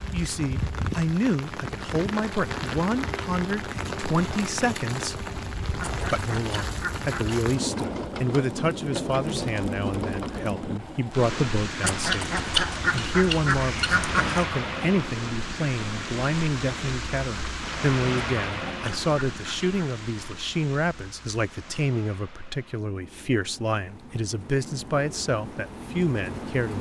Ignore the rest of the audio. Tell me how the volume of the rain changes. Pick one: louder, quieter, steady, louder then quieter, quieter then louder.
quieter.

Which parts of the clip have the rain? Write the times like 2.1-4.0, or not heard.
0.0-26.7.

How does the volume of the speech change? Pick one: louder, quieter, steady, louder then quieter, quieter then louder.
steady.